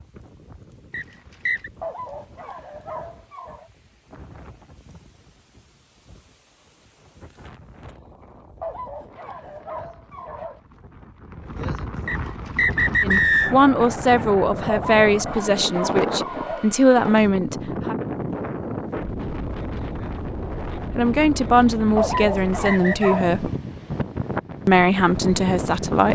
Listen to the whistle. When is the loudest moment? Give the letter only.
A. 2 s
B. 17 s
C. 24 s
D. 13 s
D.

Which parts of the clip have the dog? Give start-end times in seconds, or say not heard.
1.8-3.7, 8.6-10.6, 14.7-16.7, 21.9-23.4.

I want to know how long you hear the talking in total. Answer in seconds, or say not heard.
9 s.